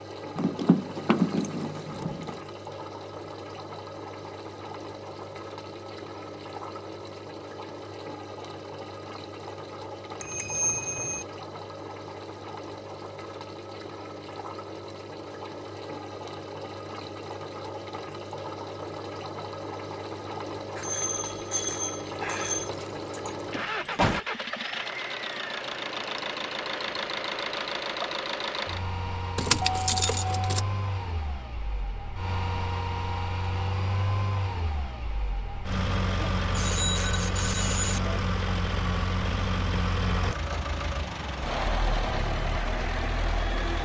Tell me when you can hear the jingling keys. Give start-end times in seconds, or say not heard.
0.3-2.4, 22.2-24.2, 29.4-30.6.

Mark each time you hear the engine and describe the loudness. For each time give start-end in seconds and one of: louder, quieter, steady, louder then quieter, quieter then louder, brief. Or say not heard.
0.0-43.8 louder.